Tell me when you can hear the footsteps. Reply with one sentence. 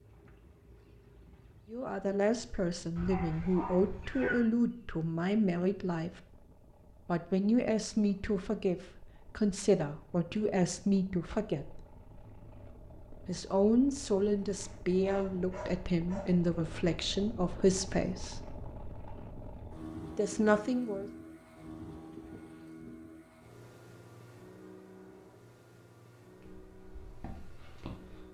The footsteps can be heard from 26.4 to 28.2 s.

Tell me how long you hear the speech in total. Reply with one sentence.
You can hear the speech for 15 seconds altogether.